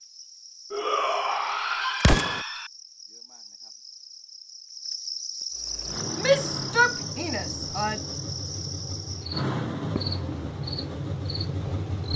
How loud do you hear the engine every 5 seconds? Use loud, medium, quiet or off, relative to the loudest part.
off, loud, loud.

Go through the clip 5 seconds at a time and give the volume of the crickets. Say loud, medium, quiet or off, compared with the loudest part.
medium, loud, loud.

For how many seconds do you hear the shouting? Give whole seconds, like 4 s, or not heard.
4 s.